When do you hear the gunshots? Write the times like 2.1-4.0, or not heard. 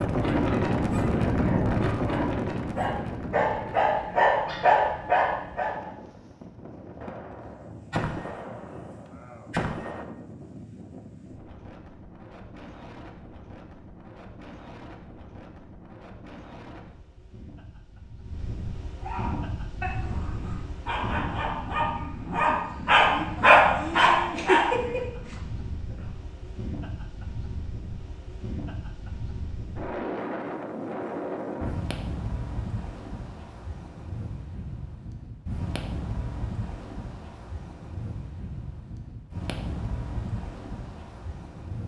7.0-10.1.